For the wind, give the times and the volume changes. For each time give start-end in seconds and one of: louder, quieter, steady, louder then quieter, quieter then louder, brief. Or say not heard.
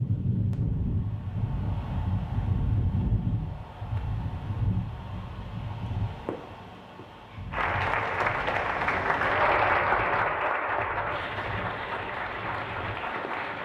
0.0-13.4 quieter.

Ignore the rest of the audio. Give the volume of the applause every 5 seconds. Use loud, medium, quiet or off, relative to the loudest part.
off, loud, medium.